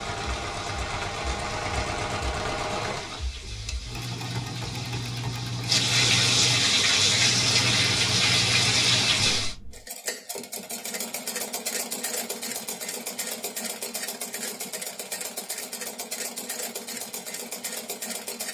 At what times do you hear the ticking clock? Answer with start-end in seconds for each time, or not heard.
not heard.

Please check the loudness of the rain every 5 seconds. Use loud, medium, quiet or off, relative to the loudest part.
quiet, loud, off, off.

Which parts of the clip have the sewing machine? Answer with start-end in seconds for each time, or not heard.
0.0-18.4.